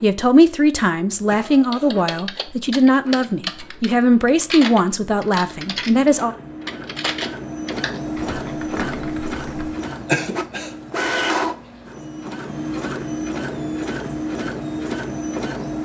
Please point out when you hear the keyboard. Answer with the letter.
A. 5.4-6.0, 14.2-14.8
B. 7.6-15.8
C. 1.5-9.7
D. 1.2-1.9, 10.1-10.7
C.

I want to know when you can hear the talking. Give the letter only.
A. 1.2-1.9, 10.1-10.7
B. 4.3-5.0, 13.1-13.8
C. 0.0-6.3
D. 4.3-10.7
C.